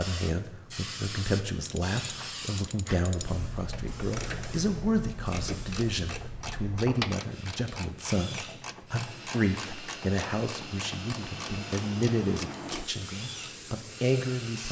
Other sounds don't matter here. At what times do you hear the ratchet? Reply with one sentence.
The ratchet can be heard from 1.6 to 12.8 s.